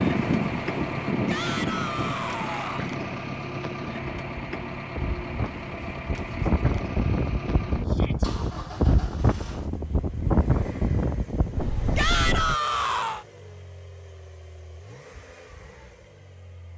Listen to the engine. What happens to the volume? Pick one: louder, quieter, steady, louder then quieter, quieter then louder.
quieter.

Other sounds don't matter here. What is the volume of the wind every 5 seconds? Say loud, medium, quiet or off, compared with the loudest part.
loud, loud, loud, off.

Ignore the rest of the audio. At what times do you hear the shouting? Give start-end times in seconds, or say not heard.
1.2-2.9, 7.8-8.2, 11.9-13.2.